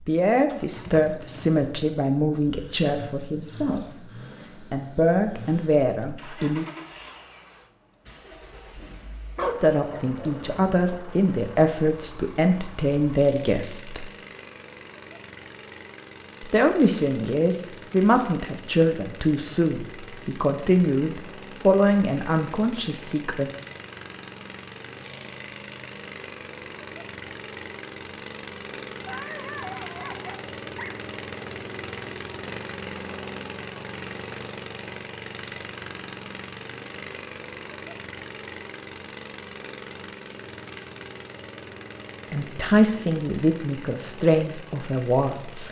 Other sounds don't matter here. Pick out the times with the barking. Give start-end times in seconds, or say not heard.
9.3-10.8, 29.1-30.9.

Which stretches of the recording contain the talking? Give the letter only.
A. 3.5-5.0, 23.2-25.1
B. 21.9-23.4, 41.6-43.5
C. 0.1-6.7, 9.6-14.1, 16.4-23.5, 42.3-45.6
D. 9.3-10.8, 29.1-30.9
C.